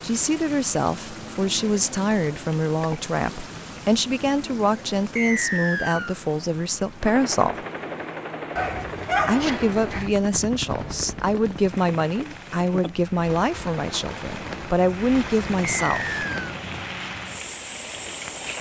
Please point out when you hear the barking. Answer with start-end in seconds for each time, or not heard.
8.6-10.2.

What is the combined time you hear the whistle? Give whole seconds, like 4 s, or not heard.
2 s.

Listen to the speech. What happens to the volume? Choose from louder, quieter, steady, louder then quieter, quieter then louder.
steady.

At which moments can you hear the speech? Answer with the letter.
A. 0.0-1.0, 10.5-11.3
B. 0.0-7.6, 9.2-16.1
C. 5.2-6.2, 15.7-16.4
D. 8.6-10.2
B.